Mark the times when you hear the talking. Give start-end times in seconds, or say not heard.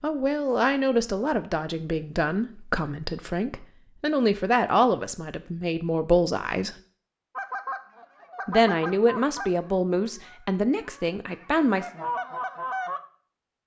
0.0-6.8, 8.4-11.8.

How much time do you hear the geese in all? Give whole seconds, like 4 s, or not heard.
6 s.